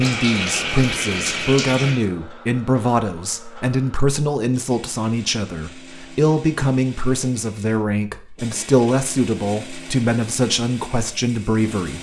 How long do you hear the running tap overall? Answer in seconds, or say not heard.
2 s.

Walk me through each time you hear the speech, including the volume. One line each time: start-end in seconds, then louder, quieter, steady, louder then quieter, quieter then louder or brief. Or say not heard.
0.0-11.9 steady.